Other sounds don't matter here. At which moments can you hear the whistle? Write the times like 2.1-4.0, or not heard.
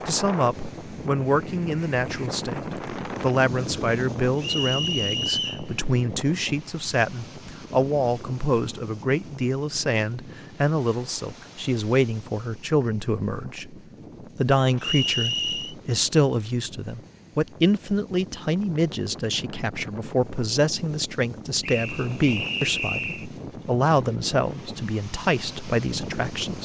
4.4-5.7, 14.8-15.8, 21.6-23.2.